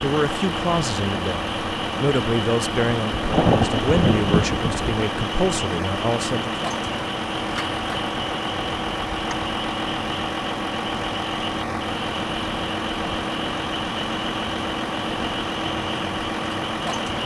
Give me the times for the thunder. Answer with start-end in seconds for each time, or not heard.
3.1-4.8.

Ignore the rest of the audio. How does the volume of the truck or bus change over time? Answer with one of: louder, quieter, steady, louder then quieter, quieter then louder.
steady.